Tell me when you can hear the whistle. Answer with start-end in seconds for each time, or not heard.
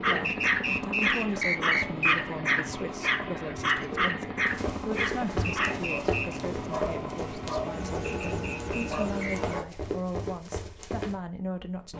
0.2-2.2, 5.7-6.4, 8.1-9.6.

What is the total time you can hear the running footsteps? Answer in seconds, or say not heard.
7 s.